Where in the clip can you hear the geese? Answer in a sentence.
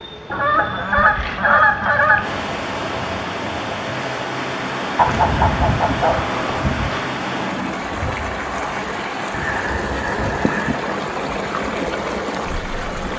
The geese can be heard from 0.3 to 2.2 s, from 5.0 to 7.0 s and from 9.3 to 10.9 s.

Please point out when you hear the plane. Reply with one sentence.
The plane can be heard from 0.0 to 13.1 s.